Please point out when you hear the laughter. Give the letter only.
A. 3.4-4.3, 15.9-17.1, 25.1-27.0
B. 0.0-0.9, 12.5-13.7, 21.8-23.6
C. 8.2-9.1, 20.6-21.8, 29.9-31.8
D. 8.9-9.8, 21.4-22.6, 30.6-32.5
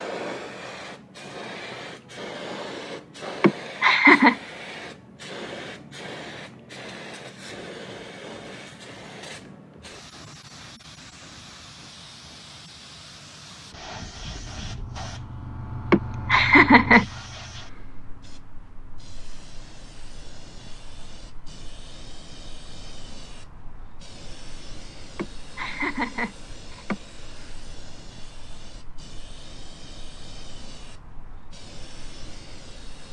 A.